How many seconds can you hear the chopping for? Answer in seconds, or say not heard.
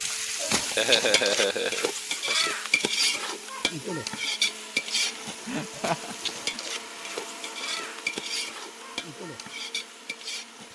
not heard.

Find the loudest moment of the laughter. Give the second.
1 s.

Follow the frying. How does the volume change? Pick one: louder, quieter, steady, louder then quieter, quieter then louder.
quieter.